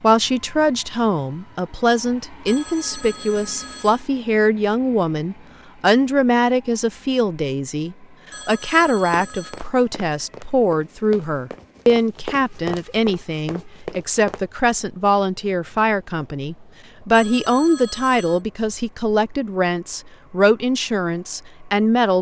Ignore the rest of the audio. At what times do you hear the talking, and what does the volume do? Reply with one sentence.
The talking can be heard from 0.0 to 22.1 s, at a steady volume.